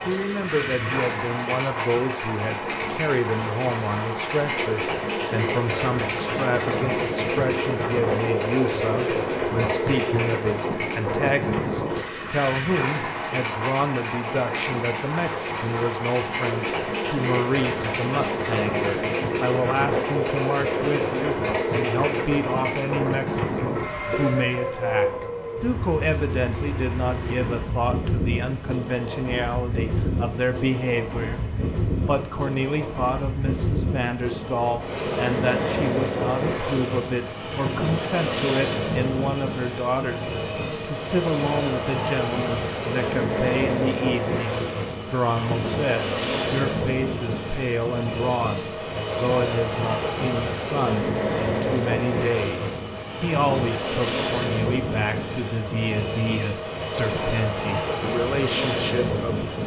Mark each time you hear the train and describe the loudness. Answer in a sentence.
You can hear the train from 0.0 to 59.6 s, at a steady volume.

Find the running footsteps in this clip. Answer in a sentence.
You can't hear the running footsteps here.